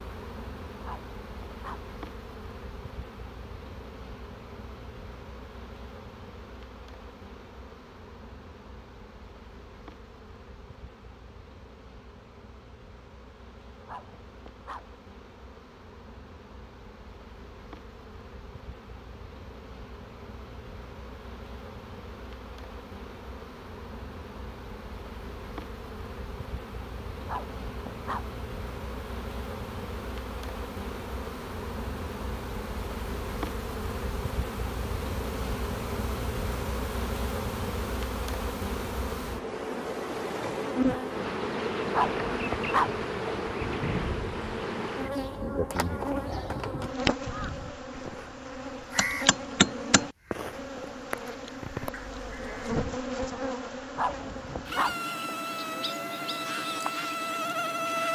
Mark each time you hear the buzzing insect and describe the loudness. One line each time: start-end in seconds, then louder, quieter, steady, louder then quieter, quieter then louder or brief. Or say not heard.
0.0-58.1 louder.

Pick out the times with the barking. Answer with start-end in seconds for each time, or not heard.
0.8-1.9, 13.8-14.8, 27.2-28.2, 41.9-42.9, 54.0-55.0.